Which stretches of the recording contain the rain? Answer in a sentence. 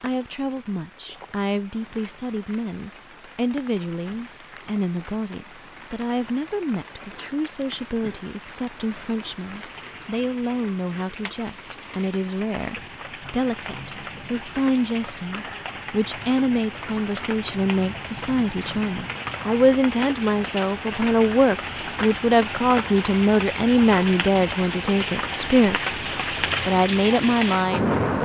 You can hear the rain from 0.0 to 28.2 s.